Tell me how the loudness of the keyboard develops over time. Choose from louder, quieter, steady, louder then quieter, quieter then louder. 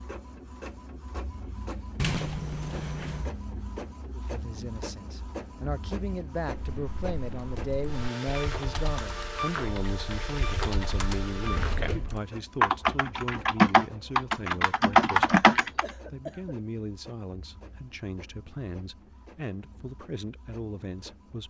louder.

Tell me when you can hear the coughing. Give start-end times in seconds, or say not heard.
15.8-16.6.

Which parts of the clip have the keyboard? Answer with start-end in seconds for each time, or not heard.
6.5-15.8.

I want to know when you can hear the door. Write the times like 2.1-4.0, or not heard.
1.9-3.4.